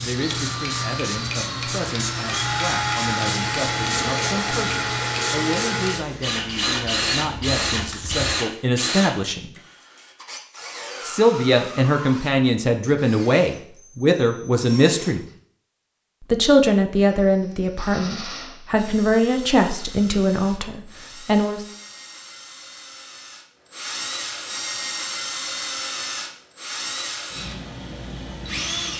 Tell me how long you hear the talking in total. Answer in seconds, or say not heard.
19 s.